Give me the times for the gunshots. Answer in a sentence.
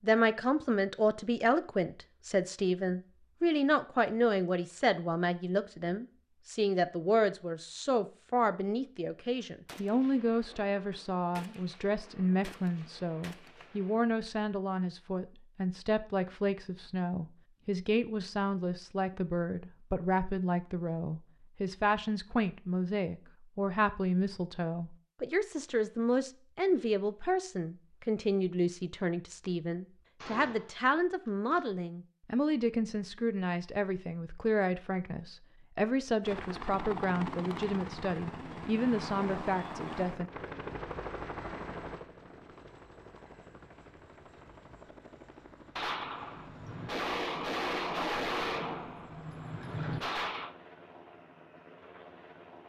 The gunshots can be heard from 9.7 to 13.7 s, from 30.2 to 31.6 s and from 45.8 to 50.5 s.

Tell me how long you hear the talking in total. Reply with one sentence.
The talking can be heard for 40 seconds in total.